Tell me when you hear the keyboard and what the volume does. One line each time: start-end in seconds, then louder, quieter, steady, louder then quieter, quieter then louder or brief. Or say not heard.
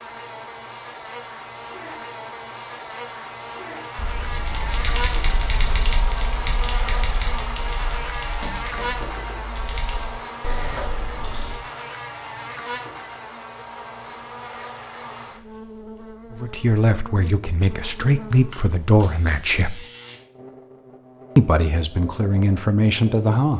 4.3-10.2 quieter.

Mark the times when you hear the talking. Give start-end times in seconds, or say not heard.
16.4-19.8, 21.4-23.5.